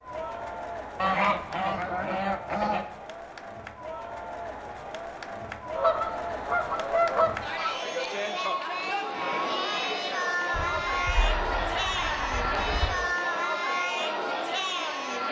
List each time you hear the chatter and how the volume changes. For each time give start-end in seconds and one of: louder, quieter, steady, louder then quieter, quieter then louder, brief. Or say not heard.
0.0-15.2 louder.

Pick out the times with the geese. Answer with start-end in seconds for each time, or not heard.
0.9-2.9, 5.8-7.8, 10.5-12.9.